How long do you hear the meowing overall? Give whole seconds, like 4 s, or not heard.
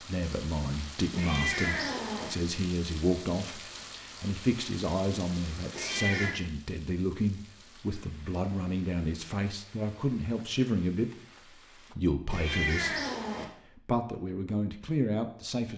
3 s.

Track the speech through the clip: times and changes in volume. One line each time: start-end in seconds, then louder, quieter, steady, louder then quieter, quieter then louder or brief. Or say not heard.
0.0-13.0 steady
13.7-15.7 brief.